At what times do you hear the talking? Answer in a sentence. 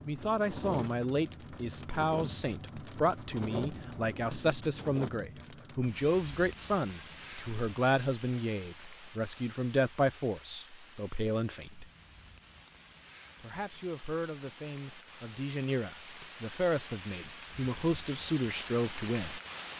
You can hear the talking from 0.1 to 11.9 s and from 13.4 to 19.4 s.